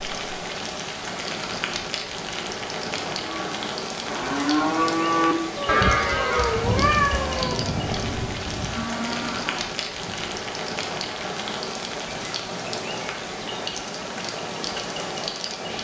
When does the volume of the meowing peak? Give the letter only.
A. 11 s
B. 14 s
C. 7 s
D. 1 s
C.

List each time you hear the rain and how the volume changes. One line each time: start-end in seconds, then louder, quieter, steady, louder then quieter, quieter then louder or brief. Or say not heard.
0.0-15.7 steady.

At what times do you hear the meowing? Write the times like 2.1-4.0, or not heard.
5.5-7.5.